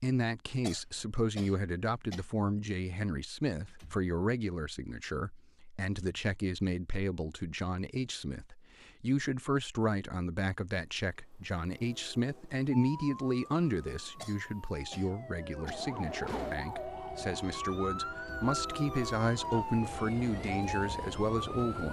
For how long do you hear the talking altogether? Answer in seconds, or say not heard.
22 s.